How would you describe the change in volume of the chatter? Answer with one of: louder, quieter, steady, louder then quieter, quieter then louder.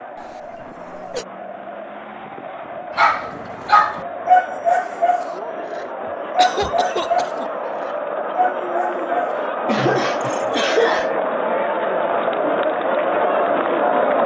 louder.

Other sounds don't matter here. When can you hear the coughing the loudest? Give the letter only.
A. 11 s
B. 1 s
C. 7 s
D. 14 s
A.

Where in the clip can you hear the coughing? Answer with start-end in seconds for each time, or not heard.
0.1-1.2, 6.0-7.5, 9.7-11.1.